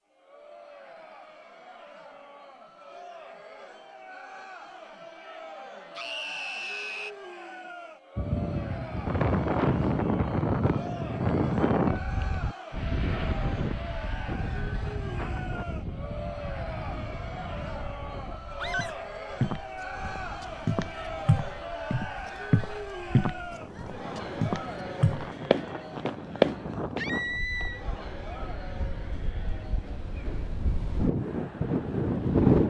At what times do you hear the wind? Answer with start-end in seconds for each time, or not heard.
8.2-32.6.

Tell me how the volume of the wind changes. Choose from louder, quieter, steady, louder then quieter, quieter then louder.
quieter then louder.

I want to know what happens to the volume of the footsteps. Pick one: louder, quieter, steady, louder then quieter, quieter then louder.
louder.